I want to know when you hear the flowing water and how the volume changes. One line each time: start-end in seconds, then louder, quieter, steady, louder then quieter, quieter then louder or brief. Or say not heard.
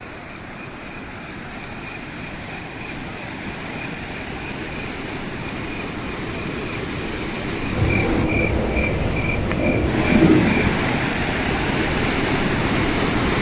0.0-13.3 louder.